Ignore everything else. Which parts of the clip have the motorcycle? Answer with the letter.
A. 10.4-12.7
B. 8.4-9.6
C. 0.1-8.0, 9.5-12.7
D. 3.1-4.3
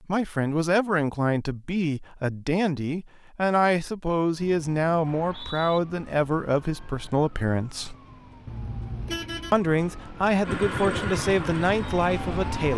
A.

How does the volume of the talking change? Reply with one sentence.
The volume of the talking stays about the same.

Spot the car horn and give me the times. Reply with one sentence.
You can hear the car horn from 8.4 to 9.6 s.